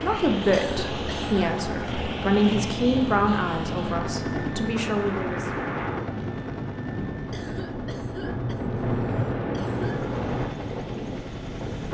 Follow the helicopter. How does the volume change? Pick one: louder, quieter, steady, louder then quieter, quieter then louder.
quieter.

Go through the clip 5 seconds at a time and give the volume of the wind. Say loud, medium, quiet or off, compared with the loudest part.
medium, loud, loud.